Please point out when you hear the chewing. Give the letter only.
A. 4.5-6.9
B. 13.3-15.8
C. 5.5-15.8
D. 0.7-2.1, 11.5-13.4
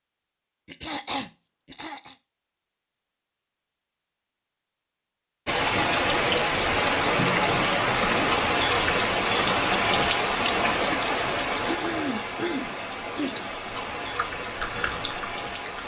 B.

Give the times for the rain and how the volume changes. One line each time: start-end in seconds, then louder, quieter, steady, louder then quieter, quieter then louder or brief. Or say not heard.
5.5-15.8 quieter.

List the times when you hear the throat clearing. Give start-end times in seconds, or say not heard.
0.7-2.1, 11.5-13.4.